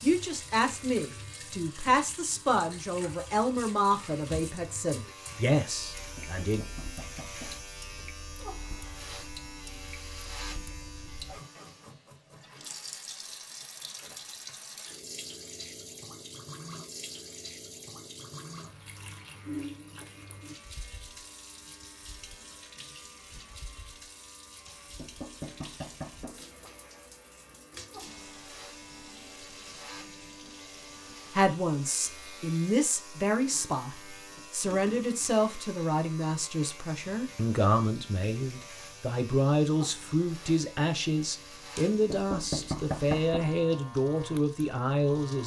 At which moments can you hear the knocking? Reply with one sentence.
The knocking can be heard from 6.0 to 7.6 s, from 24.6 to 26.4 s and from 41.8 to 43.5 s.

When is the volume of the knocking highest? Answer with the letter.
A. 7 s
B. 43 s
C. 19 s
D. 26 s
B.